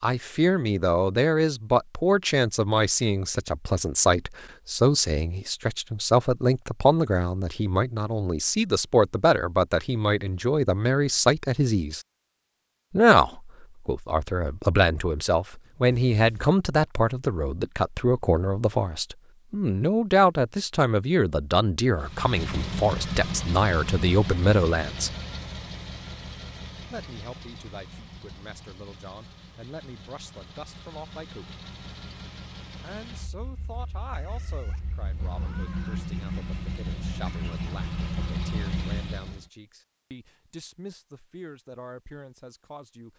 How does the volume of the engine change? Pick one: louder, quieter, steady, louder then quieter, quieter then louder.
quieter then louder.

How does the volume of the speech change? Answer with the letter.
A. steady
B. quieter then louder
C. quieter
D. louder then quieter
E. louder
C.